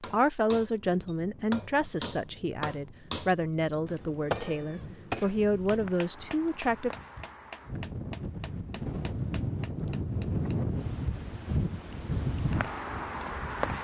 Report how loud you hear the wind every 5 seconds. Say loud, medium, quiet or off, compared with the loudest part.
quiet, medium, loud.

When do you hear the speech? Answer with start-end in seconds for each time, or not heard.
0.0-6.9.